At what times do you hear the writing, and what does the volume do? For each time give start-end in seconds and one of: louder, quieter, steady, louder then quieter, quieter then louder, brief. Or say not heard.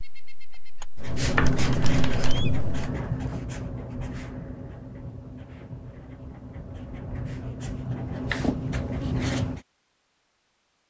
0.9-9.6 quieter then louder.